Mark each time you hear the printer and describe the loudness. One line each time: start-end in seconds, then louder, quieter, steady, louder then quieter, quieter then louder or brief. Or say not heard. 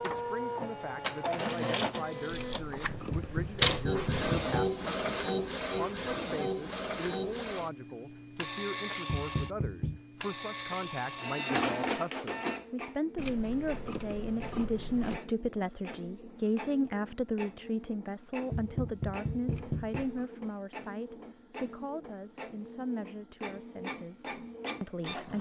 0.0-25.3 quieter.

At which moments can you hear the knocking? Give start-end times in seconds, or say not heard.
3.1-4.7, 9.1-10.0, 18.5-20.1.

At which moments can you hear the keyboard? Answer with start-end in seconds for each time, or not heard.
not heard.